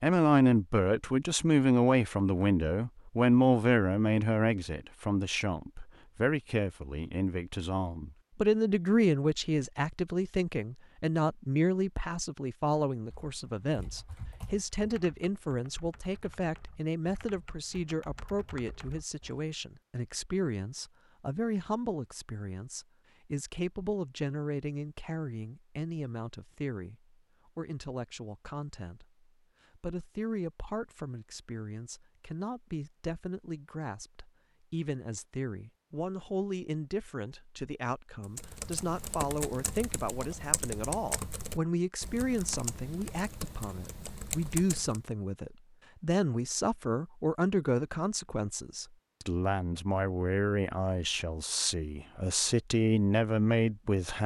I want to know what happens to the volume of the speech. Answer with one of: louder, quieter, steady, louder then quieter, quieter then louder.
quieter then louder.